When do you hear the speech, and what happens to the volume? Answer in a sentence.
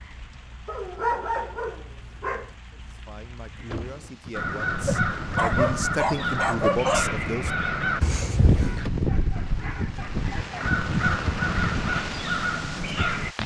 The speech can be heard from 2.7 to 7.7 s, getting louder.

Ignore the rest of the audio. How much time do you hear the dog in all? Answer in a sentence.
You can hear the dog for 6 seconds altogether.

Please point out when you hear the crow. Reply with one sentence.
The crow can be heard from 4.3 to 13.3 s.